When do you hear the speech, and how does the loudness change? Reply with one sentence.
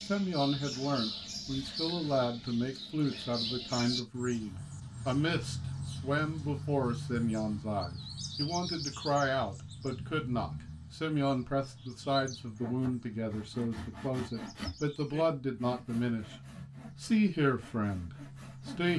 You can hear the speech from 0.1 to 16.4 s, at a steady volume; and briefly from 17.0 to 18.9 s.